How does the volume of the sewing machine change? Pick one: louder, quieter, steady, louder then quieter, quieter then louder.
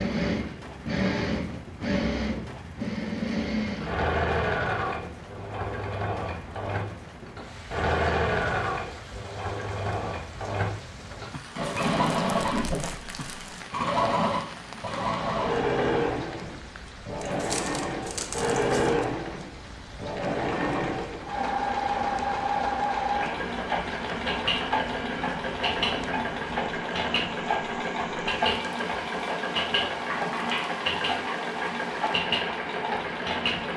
steady.